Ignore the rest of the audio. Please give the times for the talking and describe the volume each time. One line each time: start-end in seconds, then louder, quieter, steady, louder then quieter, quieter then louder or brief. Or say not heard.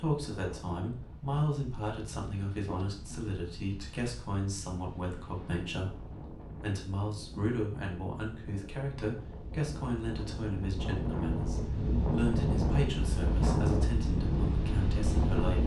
0.0-15.6 steady.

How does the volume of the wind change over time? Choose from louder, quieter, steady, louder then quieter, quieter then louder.
louder.